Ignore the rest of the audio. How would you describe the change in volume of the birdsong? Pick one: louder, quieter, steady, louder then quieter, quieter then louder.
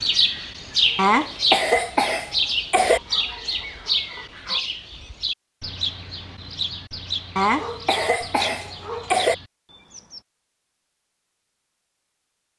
quieter.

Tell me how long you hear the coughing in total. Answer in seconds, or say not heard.
4 s.